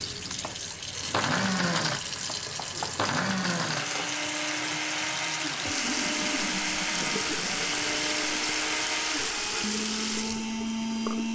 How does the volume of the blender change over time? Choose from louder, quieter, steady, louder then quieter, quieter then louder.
steady.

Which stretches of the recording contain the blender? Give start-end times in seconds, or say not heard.
0.0-11.2.